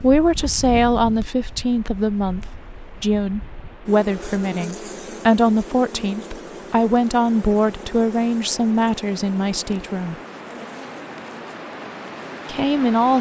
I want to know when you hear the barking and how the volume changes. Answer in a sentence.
The barking can't be heard in this clip.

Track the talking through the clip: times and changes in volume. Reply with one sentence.
The talking can be heard from 0.0 to 10.2 s, at a steady volume; and briefly from 12.4 to 13.1 s.